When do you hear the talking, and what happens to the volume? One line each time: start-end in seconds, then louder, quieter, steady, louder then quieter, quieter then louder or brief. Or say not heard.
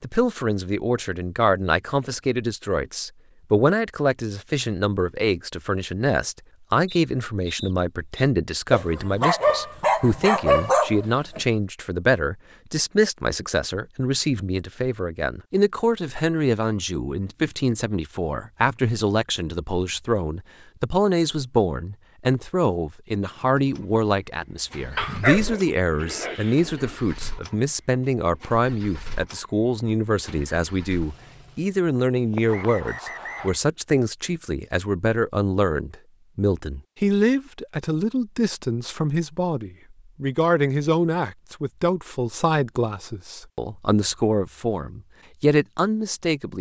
0.0-46.5 steady.